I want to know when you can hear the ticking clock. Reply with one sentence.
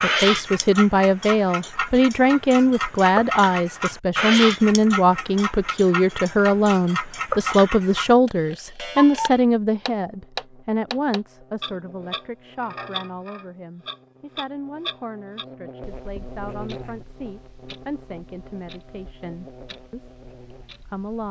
The ticking clock can be heard from 0.0 to 21.2 s.